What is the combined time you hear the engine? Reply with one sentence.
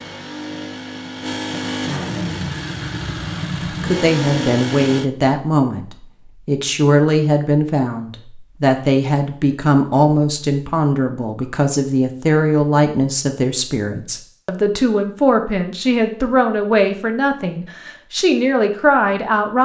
You can hear the engine for 5 seconds altogether.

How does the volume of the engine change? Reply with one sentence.
The loudness of the engine goes up.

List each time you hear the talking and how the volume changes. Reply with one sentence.
The talking can be heard from 3.8 to 19.6 s, at a steady volume.